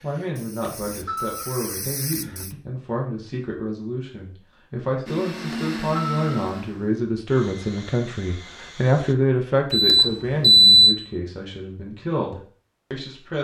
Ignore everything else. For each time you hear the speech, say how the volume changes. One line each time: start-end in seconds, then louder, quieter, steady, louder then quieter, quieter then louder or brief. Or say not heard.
0.0-13.3 louder then quieter.